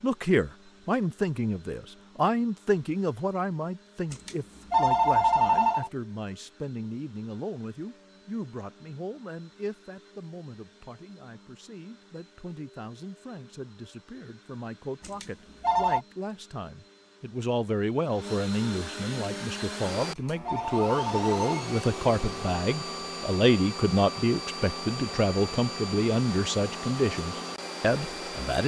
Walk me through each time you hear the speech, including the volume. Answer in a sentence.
You can hear the speech from 0.0 to 28.6 s, getting quieter then louder.